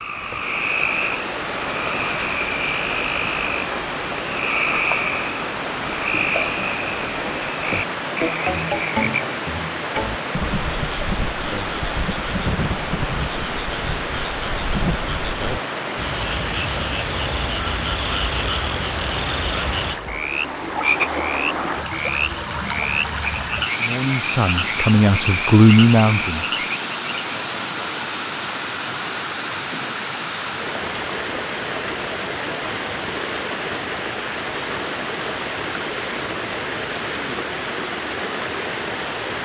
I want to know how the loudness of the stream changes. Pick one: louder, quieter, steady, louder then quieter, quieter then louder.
steady.